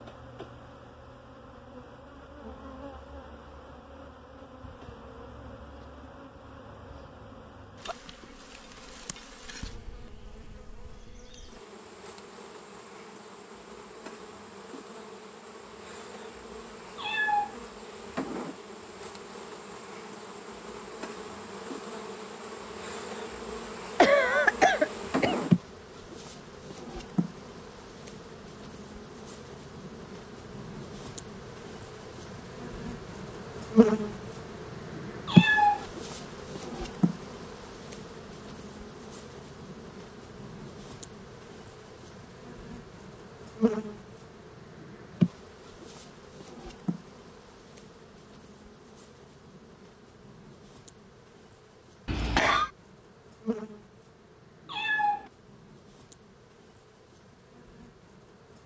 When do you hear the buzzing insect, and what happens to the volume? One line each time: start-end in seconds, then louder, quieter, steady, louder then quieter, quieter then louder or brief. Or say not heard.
0.0-58.6 louder then quieter.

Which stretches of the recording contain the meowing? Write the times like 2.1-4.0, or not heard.
16.9-17.6, 35.2-35.9, 54.6-55.3.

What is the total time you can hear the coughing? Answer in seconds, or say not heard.
2 s.